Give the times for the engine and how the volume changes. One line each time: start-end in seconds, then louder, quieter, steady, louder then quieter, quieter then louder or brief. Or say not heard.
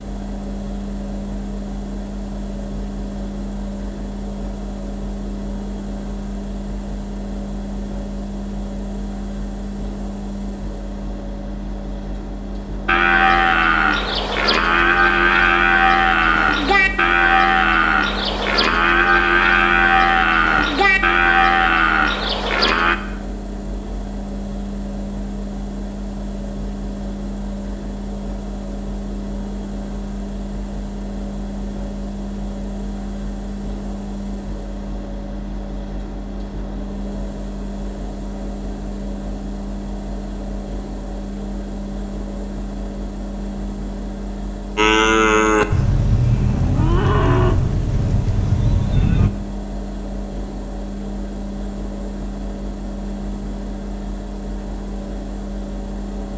0.0-56.3 steady.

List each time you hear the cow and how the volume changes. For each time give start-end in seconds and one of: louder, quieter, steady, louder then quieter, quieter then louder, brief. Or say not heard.
12.8-22.9 steady
44.8-49.3 quieter.